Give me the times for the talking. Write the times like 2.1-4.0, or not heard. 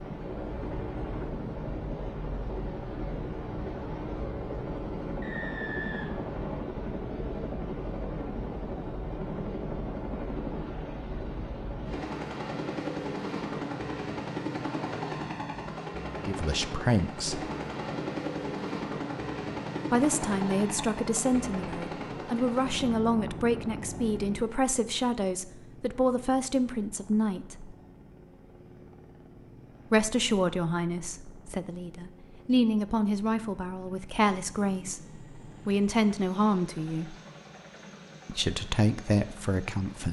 16.2-17.4, 19.9-27.8, 29.9-37.1, 38.2-40.0.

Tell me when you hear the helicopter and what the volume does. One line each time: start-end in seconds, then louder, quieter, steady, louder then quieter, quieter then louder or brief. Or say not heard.
0.0-40.0 quieter.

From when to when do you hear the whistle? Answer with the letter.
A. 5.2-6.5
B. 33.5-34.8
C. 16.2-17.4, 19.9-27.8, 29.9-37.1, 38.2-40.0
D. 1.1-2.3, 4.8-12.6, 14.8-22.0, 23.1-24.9
A.